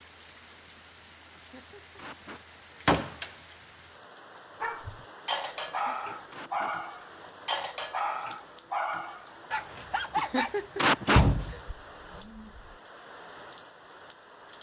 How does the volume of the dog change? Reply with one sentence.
The loudness of the dog goes down.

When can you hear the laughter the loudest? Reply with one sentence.
The volume of the laughter peaks at 11 seconds.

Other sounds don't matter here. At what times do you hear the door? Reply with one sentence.
The door can be heard from 2.9 to 3.3 s and from 11.1 to 11.6 s.